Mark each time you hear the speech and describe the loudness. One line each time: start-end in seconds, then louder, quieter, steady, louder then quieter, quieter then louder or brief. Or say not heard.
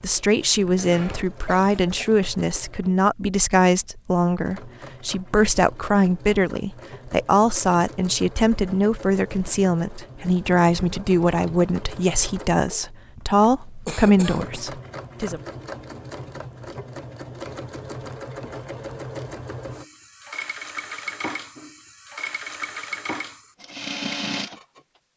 0.0-15.4 steady.